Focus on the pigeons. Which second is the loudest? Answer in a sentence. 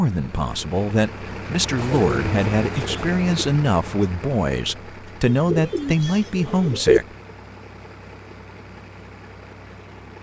The volume of the pigeons peaks at 7 seconds.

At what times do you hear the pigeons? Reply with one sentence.
The pigeons can be heard from 1.8 to 3.5 s and from 5.2 to 7.0 s.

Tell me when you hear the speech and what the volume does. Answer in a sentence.
The speech can be heard from 0.0 to 7.2 s, at a steady volume.